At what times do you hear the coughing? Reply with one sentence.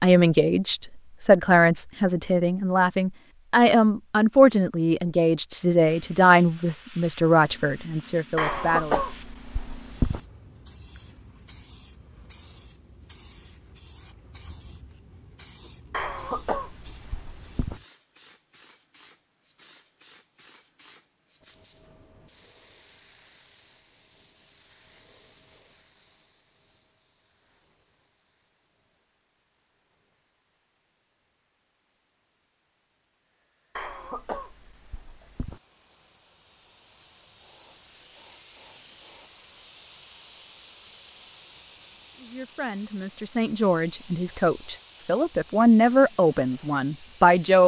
The coughing can be heard from 8.3 to 10.2 s, from 15.9 to 17.8 s and from 33.8 to 35.6 s.